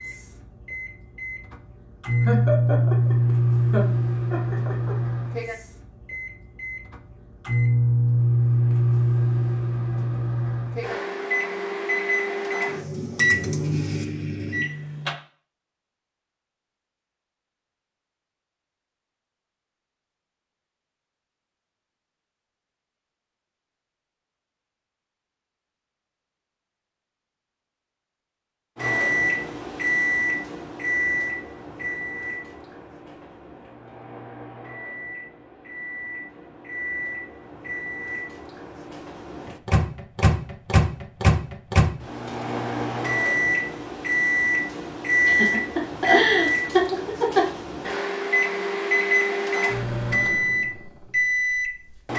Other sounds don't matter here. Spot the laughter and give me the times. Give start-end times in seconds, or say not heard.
2.2-5.0, 45.2-47.9.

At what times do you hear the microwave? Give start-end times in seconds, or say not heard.
0.0-15.2, 28.8-52.1.